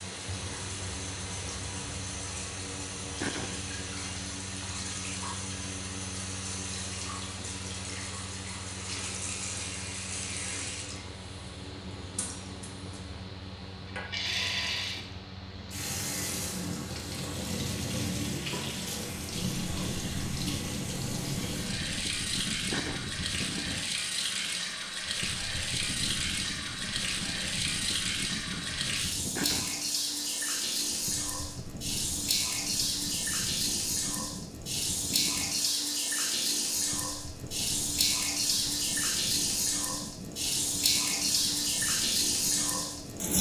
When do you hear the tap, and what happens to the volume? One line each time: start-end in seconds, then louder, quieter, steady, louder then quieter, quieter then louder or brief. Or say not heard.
0.0-43.3 louder.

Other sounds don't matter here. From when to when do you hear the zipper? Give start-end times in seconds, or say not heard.
not heard.